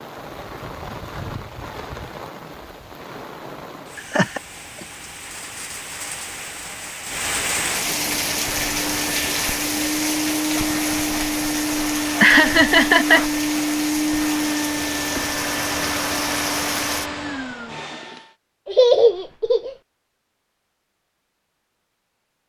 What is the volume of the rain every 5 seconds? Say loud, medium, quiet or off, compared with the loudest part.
medium, loud, loud, loud, off.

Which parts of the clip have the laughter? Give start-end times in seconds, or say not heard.
4.0-4.8, 12.2-13.2, 18.6-19.8.